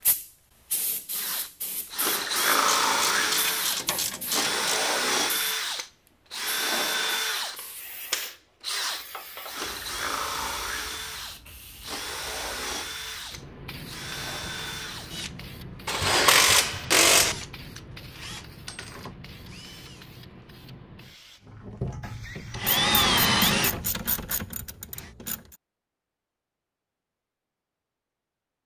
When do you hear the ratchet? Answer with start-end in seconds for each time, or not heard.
2.6-4.8, 15.8-17.4, 22.6-25.6.